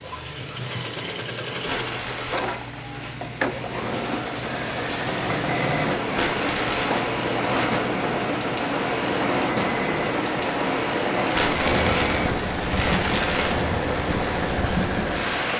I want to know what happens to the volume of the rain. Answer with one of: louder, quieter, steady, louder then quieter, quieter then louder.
louder.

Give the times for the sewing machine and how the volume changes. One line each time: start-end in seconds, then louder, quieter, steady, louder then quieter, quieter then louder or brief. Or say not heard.
0.0-15.5 steady.